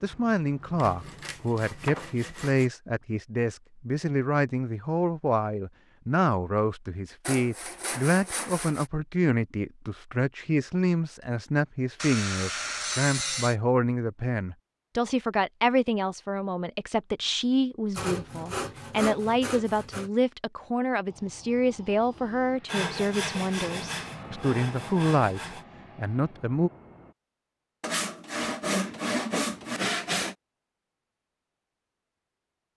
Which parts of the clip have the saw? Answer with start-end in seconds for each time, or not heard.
0.8-2.7, 7.2-8.9, 12.0-13.6, 17.9-20.1, 22.6-25.6, 27.8-30.4.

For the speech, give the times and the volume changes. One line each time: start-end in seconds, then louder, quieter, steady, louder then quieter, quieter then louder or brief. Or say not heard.
0.0-26.7 steady.